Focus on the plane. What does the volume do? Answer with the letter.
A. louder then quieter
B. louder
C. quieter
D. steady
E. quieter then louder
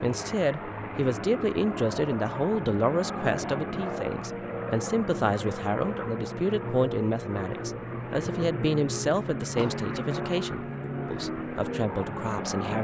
D.